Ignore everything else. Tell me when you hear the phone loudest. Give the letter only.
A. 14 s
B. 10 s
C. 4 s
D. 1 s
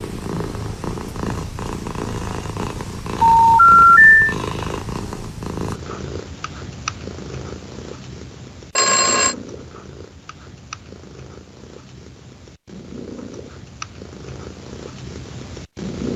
C.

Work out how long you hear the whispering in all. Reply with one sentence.
You can't hear the whispering here.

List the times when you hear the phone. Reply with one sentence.
You can hear the phone from 3.2 to 4.2 s and from 8.8 to 9.3 s.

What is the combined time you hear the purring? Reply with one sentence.
You can hear the purring for 16 seconds altogether.